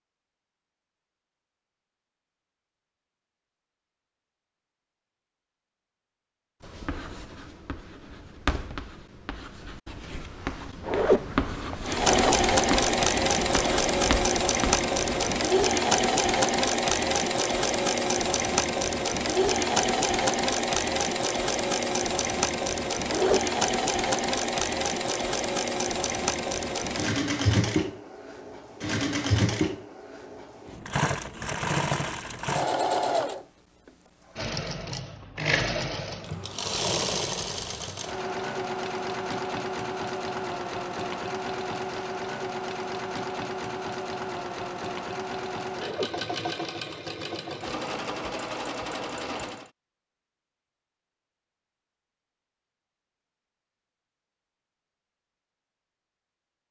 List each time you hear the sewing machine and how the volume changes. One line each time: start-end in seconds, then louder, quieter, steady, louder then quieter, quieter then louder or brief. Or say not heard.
11.8-49.7 quieter.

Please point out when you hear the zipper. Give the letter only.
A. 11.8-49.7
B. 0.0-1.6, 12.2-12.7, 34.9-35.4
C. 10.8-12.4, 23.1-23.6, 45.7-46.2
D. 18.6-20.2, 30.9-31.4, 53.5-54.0
C.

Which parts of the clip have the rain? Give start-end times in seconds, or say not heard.
not heard.